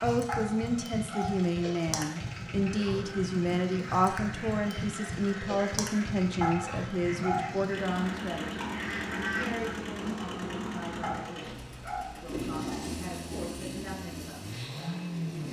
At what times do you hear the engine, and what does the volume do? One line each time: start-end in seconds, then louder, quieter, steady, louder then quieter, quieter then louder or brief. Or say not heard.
0.0-15.4 steady.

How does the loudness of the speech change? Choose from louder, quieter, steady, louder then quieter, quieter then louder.
quieter.